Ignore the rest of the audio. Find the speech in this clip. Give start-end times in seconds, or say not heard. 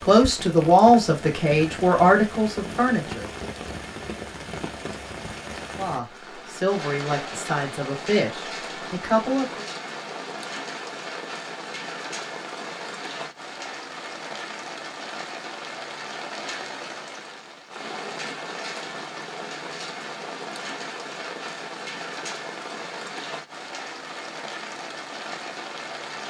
0.0-3.3, 5.8-9.7.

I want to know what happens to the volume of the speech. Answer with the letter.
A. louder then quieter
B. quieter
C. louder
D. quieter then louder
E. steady
B.